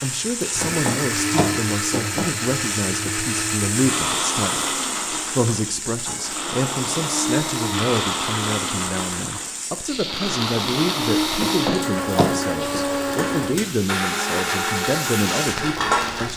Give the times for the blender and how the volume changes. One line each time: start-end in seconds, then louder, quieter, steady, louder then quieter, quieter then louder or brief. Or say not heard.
0.0-16.3 steady.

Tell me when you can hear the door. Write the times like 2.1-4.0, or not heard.
0.6-2.2, 11.4-12.8.